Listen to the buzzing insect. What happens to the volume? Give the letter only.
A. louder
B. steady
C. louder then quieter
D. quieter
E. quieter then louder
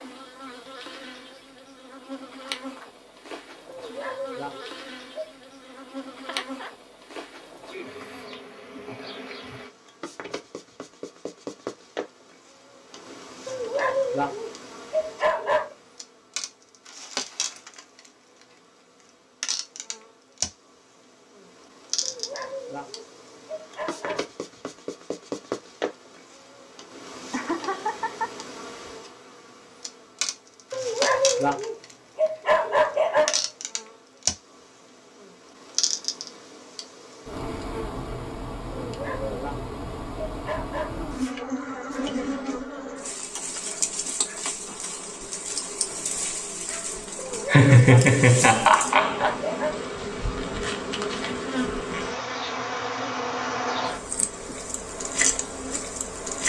A.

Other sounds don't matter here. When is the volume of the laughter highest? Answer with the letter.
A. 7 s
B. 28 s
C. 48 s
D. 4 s
C.